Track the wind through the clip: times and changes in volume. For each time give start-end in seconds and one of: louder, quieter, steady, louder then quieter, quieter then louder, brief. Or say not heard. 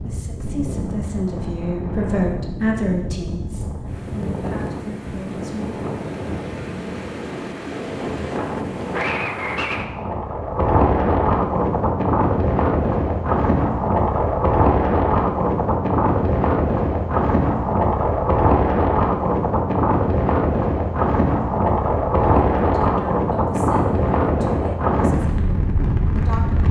0.0-26.6 louder.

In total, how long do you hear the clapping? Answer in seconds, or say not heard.
not heard.